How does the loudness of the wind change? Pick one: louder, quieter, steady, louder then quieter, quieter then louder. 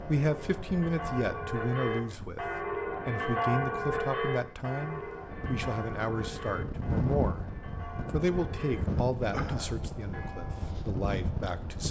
louder.